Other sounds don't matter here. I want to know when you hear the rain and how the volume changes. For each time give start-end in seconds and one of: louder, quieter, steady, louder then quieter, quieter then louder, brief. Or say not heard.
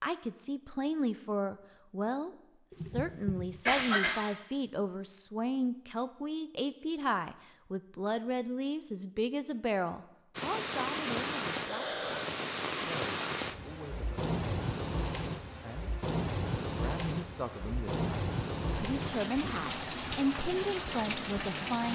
10.3-21.8 steady.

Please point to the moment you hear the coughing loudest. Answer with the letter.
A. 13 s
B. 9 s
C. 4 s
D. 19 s
C.